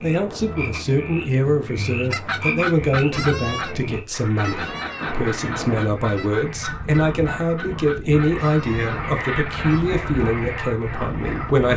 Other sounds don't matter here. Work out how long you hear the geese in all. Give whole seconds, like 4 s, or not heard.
8 s.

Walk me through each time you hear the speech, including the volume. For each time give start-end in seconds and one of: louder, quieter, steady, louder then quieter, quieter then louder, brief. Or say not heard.
0.0-11.7 steady.